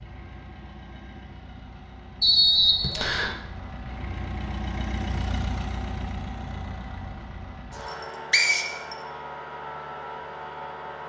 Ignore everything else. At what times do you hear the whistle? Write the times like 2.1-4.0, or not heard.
2.2-3.4, 7.8-8.9.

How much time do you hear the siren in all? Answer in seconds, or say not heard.
not heard.